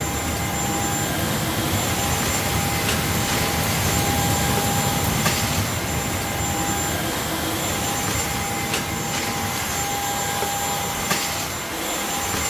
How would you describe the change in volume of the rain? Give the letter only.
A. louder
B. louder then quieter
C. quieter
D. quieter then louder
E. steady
C.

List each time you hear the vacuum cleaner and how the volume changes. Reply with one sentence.
You can hear the vacuum cleaner from 0.0 to 12.4 s, at a steady volume.